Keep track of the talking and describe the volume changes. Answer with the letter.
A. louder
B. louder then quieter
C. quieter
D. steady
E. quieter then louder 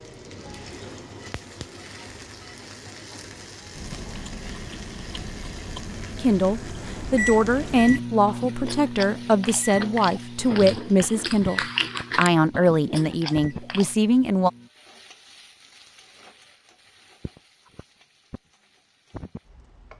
D.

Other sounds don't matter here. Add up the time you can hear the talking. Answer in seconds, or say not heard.
8 s.